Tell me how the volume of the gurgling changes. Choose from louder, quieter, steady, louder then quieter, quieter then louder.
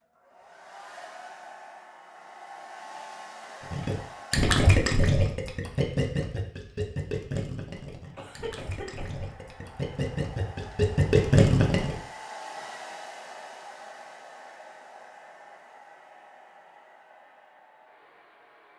quieter then louder.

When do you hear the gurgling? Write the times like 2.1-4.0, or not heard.
3.7-12.0.